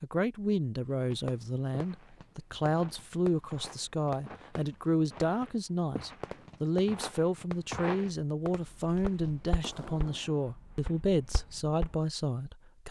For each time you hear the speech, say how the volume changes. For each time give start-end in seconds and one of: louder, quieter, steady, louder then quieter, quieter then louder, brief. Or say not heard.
0.0-12.8 steady.